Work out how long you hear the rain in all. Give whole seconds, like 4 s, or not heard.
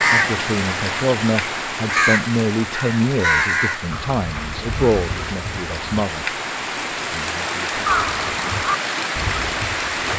10 s.